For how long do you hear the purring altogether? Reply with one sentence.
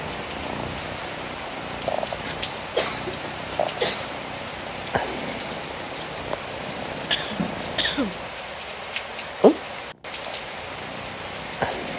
You can hear the purring for 11 seconds altogether.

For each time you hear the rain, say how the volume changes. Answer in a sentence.
The rain can be heard from 0.0 to 11.9 s, at a steady volume.